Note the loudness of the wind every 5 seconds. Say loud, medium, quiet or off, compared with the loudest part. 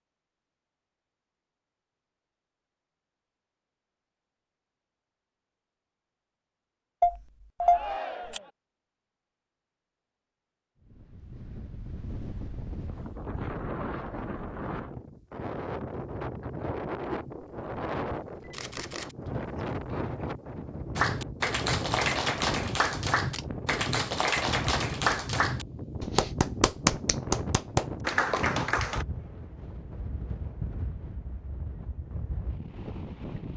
off, off, loud, loud, loud, loud, medium.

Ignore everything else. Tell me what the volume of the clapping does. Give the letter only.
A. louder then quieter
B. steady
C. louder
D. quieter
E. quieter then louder
B.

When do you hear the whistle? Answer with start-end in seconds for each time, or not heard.
not heard.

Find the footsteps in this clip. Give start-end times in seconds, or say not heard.
not heard.